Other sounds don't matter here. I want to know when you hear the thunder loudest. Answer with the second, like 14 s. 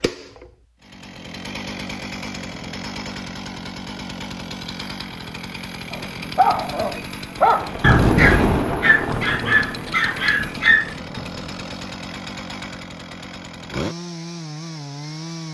8 s.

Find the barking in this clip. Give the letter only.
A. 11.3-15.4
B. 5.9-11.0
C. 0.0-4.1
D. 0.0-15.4
B.